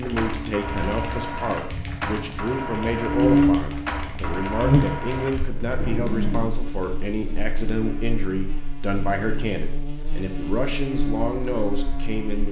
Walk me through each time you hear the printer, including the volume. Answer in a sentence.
You can hear the printer from 0.0 to 6.5 s, at a steady volume.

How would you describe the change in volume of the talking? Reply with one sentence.
The volume of the talking stays about the same.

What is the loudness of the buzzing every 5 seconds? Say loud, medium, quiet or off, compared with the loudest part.
loud, quiet, medium.